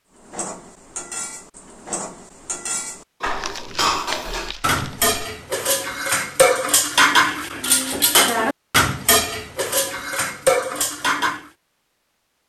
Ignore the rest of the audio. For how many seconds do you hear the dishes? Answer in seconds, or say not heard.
11 s.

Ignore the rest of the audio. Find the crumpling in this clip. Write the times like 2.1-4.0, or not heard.
3.2-5.1.